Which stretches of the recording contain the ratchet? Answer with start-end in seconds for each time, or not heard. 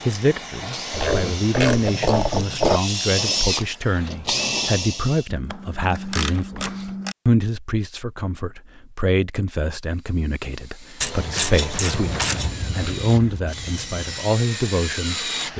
0.9-2.8, 5.2-7.2, 11.0-12.6.